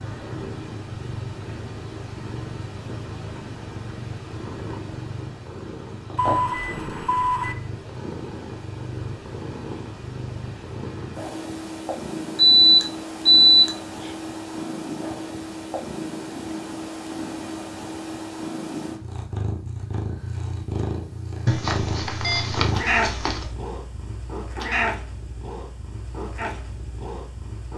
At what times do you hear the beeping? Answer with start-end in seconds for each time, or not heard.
6.2-7.5, 12.3-14.1, 21.4-23.4.